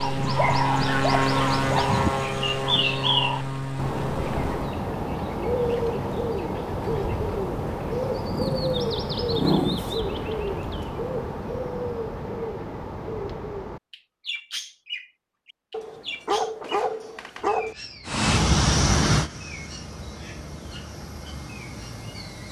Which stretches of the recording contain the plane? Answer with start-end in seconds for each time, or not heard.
0.0-4.8, 18.1-22.4.